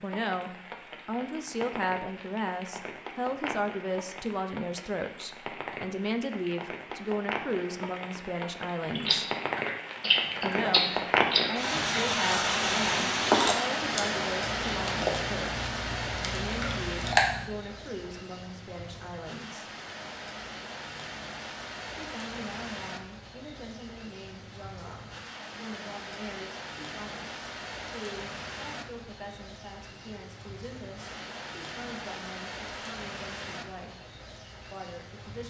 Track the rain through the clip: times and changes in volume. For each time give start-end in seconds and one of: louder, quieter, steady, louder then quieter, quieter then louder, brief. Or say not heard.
0.0-35.4 louder then quieter.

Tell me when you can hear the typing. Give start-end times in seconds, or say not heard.
not heard.